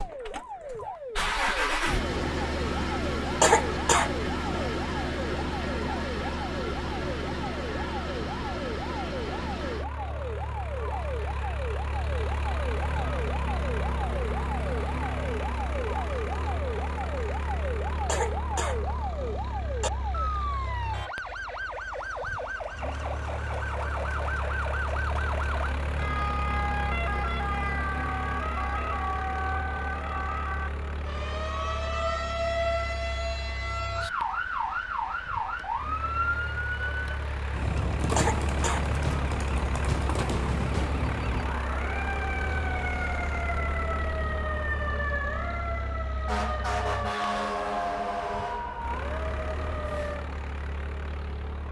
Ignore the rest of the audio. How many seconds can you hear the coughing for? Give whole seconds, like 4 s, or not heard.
4 s.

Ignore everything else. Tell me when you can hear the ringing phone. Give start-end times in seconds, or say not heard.
not heard.